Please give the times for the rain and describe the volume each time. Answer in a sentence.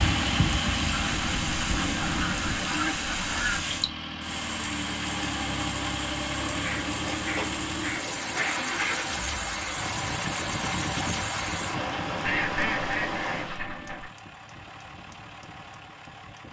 The rain can be heard from 0.0 to 13.7 s, at a steady volume.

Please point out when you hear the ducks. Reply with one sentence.
You can hear the ducks from 0.9 to 3.6 s, from 6.4 to 9.3 s and from 12.2 to 14.1 s.